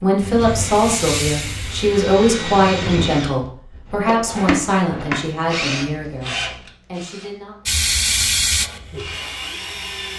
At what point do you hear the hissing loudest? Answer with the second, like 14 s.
8 s.